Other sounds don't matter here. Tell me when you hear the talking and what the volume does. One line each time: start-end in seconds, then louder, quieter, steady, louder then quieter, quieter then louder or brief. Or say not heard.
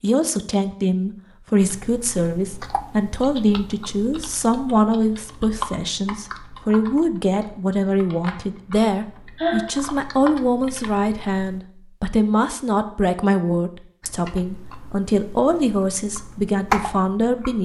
0.0-17.6 steady.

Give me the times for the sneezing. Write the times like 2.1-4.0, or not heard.
9.3-9.8.